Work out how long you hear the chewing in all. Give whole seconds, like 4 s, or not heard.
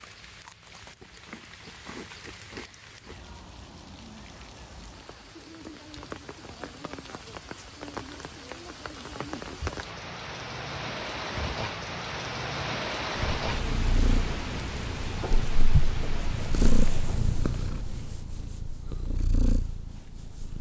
3 s.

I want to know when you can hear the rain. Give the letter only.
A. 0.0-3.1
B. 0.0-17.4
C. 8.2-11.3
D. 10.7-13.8
B.